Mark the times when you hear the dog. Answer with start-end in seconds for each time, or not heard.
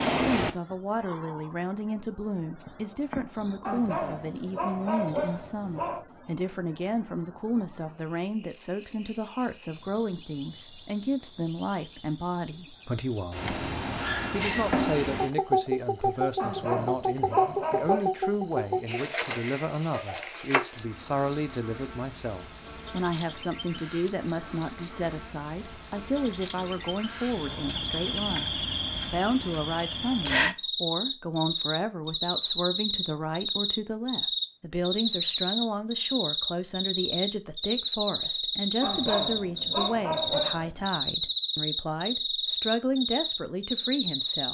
3.6-6.0, 16.4-18.1, 38.8-40.9.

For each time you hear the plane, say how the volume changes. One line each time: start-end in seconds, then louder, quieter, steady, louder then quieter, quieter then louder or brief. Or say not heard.
not heard.